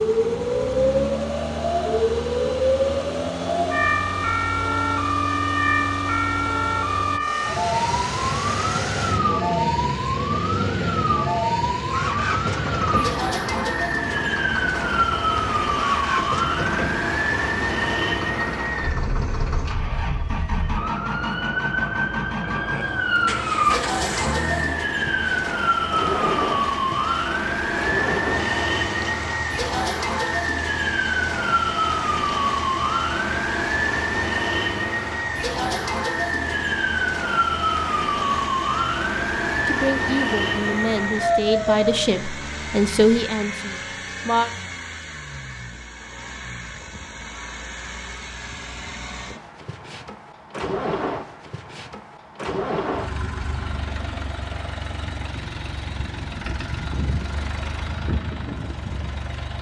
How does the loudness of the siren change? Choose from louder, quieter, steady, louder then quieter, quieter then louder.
steady.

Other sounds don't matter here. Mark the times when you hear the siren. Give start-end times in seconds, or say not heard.
0.0-42.0.